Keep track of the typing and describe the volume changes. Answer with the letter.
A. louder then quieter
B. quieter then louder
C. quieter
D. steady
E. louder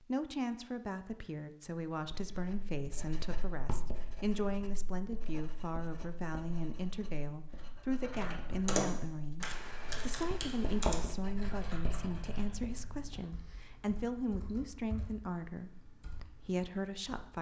C.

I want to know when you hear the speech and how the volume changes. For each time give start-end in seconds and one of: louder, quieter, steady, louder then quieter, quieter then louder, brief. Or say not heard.
0.0-17.3 steady.